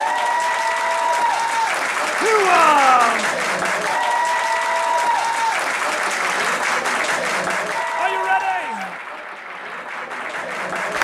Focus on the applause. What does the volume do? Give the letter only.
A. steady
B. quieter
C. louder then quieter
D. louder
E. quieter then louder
B.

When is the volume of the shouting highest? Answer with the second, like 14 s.
3 s.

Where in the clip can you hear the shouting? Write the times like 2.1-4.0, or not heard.
2.2-3.2, 8.0-8.9.